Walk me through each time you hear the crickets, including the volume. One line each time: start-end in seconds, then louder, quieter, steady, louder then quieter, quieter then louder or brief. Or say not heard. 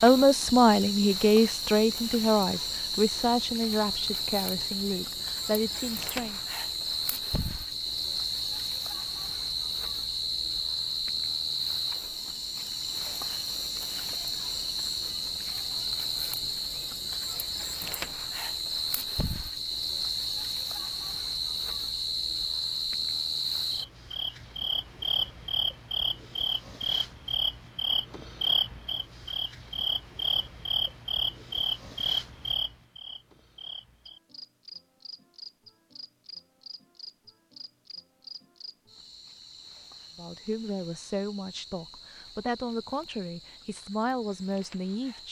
0.0-45.2 quieter.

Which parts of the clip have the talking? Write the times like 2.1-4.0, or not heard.
0.0-6.4, 40.1-45.2.